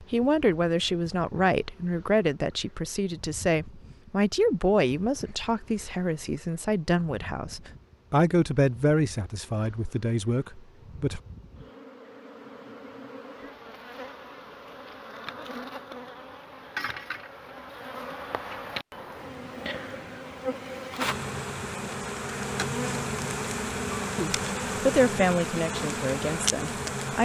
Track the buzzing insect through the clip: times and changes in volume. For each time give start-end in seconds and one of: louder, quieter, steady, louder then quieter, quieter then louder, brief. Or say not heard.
0.0-27.2 louder.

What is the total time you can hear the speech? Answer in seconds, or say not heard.
14 s.